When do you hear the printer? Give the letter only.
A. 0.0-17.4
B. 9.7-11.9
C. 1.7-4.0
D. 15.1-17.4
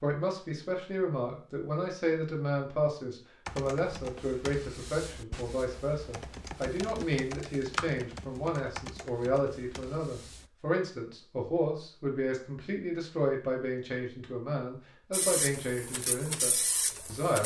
D.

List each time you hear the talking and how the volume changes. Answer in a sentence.
You can hear the talking from 0.0 to 17.4 s, at a steady volume.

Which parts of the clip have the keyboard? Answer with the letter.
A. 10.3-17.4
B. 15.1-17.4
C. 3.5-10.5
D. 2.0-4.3
C.